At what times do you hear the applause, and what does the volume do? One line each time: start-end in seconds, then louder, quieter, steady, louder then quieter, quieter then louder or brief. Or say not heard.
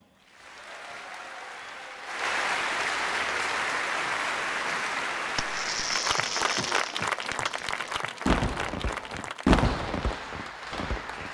0.0-11.2 louder then quieter.